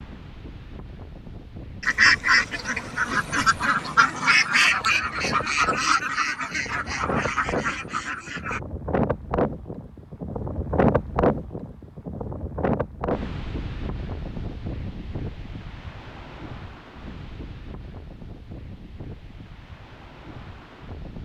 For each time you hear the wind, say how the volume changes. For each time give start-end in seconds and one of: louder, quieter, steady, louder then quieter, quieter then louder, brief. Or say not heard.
0.0-21.2 louder then quieter.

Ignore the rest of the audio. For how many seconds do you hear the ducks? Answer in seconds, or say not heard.
7 s.